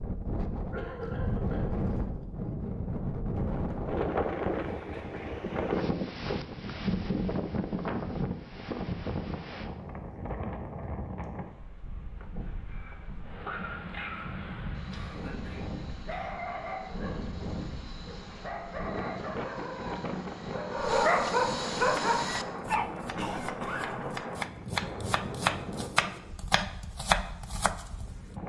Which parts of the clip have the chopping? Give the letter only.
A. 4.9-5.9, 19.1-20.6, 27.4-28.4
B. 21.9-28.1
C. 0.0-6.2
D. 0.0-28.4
B.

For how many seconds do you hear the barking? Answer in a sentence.
The barking can be heard for 10 seconds in total.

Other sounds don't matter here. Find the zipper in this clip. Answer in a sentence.
The zipper can't be heard in this clip.